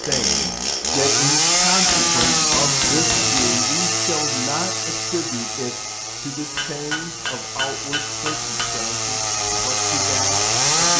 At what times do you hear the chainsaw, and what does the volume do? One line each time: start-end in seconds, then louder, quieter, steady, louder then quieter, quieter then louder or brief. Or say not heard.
0.0-10.9 quieter then louder.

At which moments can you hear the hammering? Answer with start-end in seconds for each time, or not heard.
1.9-3.6, 6.5-8.8.